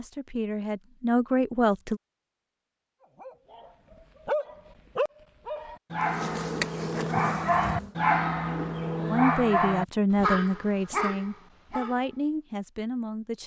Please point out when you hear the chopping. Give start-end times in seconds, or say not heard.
not heard.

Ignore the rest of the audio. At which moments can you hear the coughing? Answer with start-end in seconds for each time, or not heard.
not heard.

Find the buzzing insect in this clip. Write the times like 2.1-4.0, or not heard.
6.0-8.0.